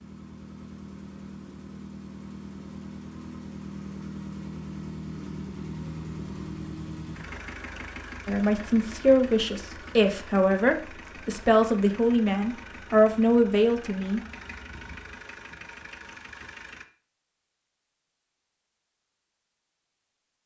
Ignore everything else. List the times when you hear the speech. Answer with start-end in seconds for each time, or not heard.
8.2-14.2.